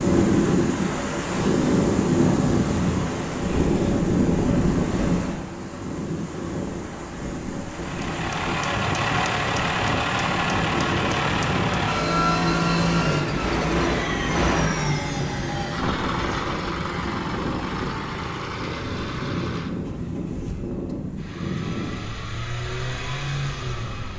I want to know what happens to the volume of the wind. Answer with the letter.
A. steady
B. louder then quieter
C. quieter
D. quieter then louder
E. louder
C.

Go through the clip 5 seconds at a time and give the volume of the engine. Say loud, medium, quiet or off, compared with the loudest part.
off, loud, loud, medium, medium.